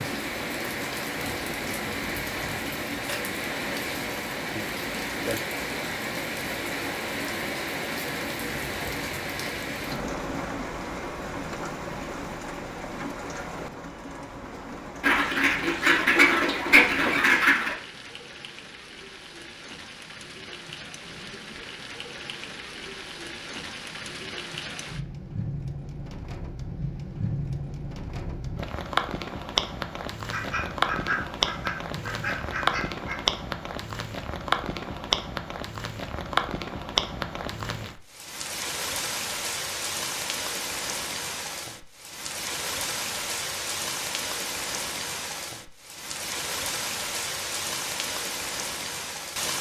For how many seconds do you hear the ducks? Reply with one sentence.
The ducks can be heard for 6 seconds in total.